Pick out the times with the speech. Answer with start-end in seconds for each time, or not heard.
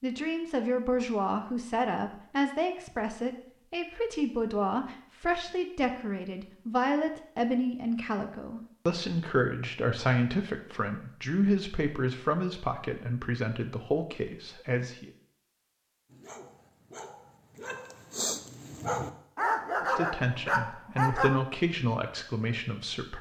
0.0-15.1, 19.8-23.1.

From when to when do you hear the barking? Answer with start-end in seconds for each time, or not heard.
16.1-21.4.